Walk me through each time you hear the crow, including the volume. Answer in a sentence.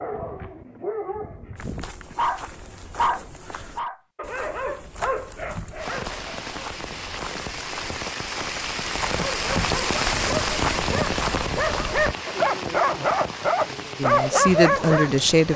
The crow can't be heard in this clip.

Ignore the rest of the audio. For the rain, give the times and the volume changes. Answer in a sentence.
You can hear the rain from 5.8 to 15.5 s, getting louder then quieter.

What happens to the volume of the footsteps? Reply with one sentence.
The volume of the footsteps goes up.